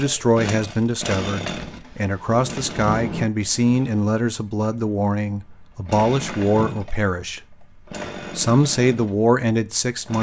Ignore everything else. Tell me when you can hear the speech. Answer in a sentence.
The speech can be heard from 0.0 to 7.5 s and from 8.3 to 10.1 s.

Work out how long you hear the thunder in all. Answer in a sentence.
You can hear the thunder for 2 seconds altogether.